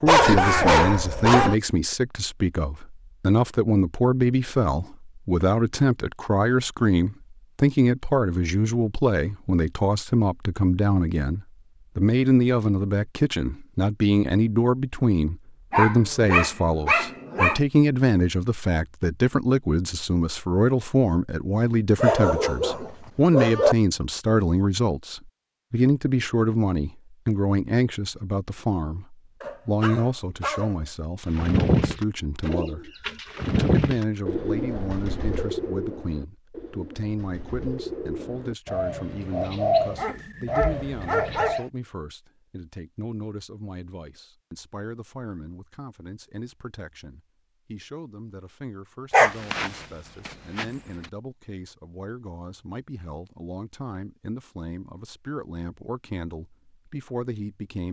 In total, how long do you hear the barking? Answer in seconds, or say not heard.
10 s.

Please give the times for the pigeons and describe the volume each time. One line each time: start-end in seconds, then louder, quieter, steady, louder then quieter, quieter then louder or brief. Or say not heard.
31.3-41.6 quieter then louder.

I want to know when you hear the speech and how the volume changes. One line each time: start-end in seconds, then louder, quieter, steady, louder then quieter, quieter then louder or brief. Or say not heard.
0.0-57.8 quieter.